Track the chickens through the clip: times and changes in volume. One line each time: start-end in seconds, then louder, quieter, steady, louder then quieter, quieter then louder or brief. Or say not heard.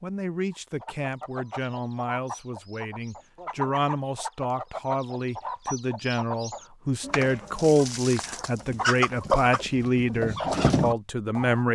0.5-11.6 louder.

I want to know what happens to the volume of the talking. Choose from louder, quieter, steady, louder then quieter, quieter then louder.
louder.